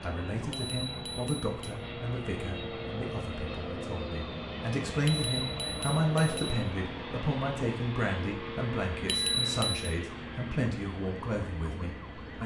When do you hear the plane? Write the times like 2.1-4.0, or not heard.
0.0-12.4.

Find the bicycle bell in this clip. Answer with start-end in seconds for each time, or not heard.
0.5-1.8, 5.0-6.6, 9.1-9.8.